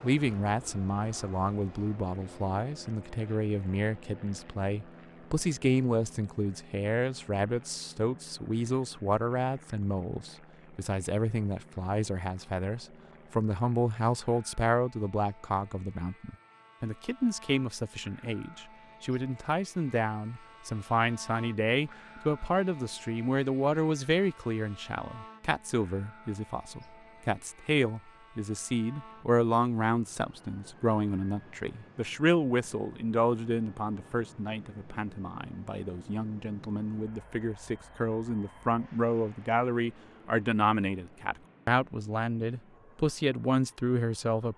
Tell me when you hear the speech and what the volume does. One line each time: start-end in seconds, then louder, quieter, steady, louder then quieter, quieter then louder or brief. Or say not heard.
0.0-44.5 steady.